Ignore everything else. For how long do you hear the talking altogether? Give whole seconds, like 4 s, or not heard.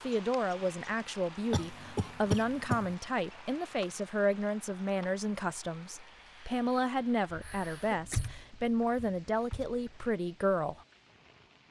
11 s.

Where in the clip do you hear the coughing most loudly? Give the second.
2 s.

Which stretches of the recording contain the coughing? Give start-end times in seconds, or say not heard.
1.5-3.0, 7.4-8.3.